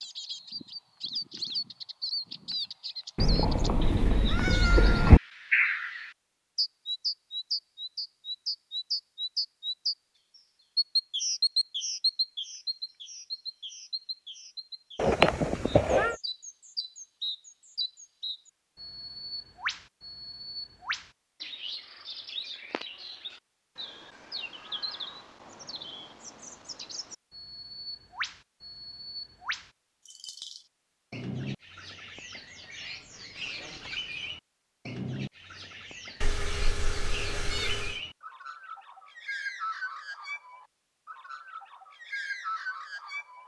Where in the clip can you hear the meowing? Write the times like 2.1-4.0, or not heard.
3.1-5.2, 14.9-16.1, 36.2-38.0.